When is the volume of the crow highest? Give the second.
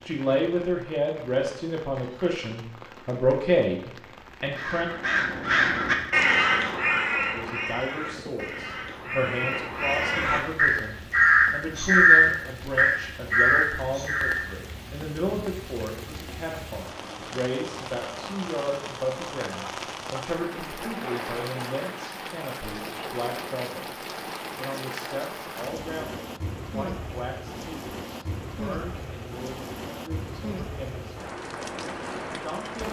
12 s.